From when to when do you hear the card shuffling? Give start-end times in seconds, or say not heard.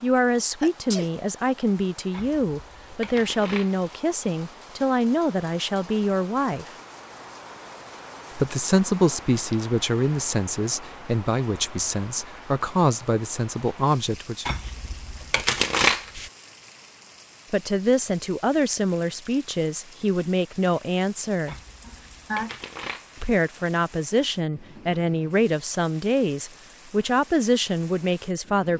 2.1-3.9, 14.4-16.3, 21.4-23.2.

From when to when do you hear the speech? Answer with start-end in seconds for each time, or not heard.
0.0-6.7, 8.3-14.5, 17.5-21.6, 23.2-28.7.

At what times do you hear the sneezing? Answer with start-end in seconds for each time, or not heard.
0.6-1.1, 21.9-22.6.